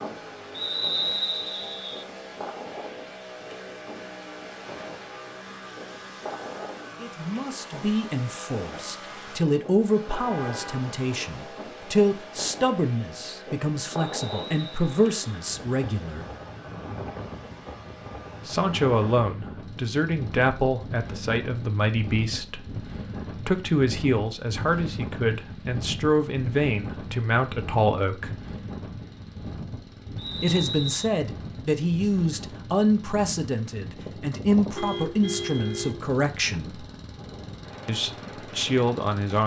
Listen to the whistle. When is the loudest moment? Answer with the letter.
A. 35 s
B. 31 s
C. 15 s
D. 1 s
D.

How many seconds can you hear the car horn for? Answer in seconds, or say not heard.
3 s.